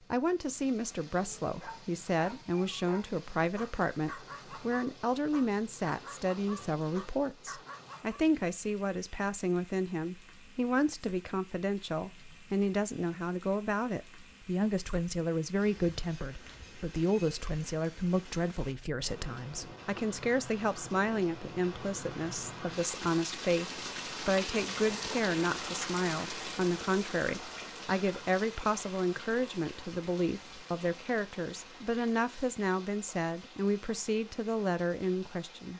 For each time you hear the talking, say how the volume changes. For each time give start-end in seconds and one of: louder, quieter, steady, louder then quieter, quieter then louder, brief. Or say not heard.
0.1-35.7 steady.